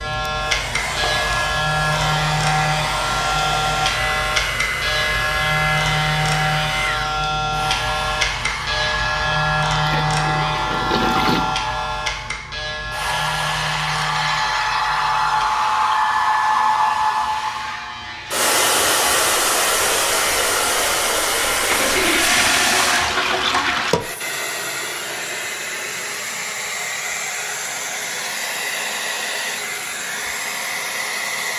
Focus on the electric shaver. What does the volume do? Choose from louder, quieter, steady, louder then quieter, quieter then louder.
quieter.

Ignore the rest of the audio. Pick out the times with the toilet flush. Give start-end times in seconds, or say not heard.
9.2-11.4, 21.7-23.9.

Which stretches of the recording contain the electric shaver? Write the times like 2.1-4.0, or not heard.
0.0-22.2.